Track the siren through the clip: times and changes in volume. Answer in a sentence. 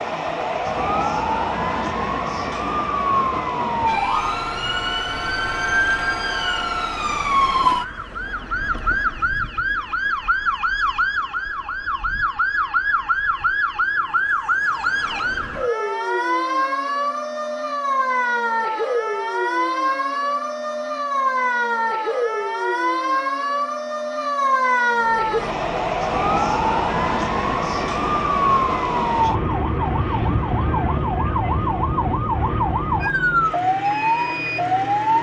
The siren can be heard from 0.0 to 35.1 s, at a steady volume.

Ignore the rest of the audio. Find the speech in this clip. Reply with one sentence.
You can't hear the speech here.